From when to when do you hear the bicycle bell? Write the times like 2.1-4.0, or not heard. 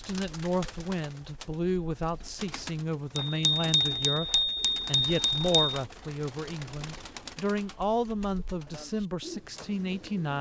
3.1-5.8.